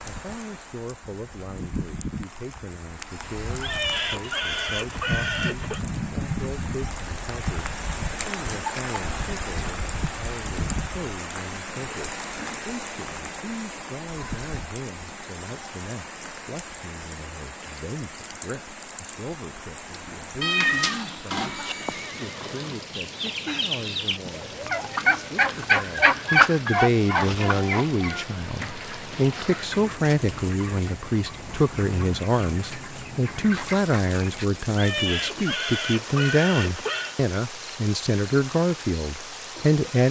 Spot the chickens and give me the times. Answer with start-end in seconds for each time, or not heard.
22.9-34.5.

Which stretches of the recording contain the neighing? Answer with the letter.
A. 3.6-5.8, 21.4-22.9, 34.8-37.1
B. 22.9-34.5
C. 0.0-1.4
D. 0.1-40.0
A.